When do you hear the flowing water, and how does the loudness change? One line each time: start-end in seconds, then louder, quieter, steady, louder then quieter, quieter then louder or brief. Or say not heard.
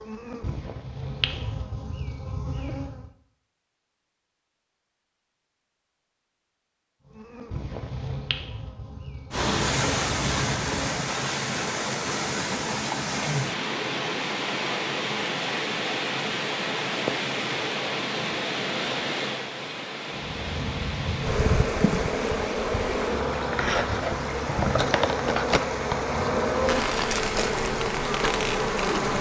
9.3-29.1 quieter.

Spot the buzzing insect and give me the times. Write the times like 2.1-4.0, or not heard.
0.0-3.1, 7.1-11.1, 20.1-29.1.